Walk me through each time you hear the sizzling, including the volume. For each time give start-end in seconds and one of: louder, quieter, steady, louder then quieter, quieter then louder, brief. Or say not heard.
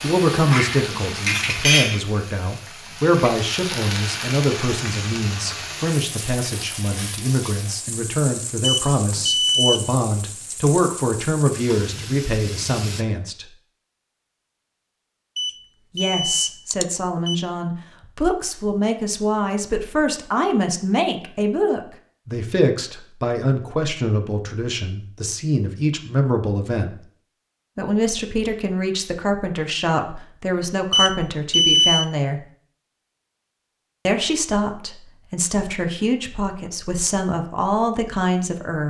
0.0-13.1 quieter.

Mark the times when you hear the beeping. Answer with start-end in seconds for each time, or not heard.
8.6-9.8, 15.3-17.4, 30.9-32.0.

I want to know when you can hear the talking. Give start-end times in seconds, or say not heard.
0.0-13.5, 15.9-27.0, 27.8-32.4, 34.0-38.8.